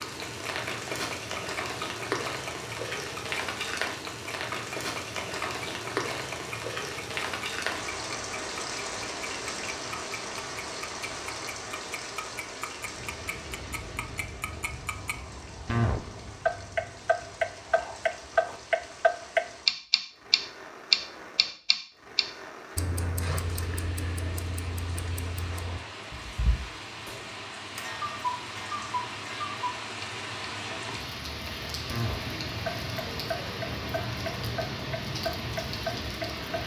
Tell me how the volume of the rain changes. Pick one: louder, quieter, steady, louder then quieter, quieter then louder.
quieter then louder.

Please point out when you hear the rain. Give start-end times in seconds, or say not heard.
0.0-36.6.